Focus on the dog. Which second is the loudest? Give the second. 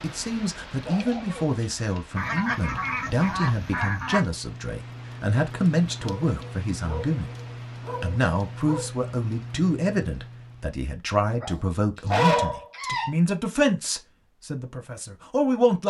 12 s.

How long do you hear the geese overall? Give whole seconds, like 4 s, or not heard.
2 s.